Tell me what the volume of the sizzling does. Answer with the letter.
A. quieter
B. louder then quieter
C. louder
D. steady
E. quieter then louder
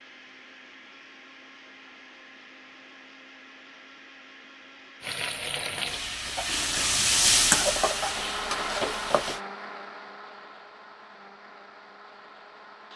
B.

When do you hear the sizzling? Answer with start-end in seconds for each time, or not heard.
5.0-9.4.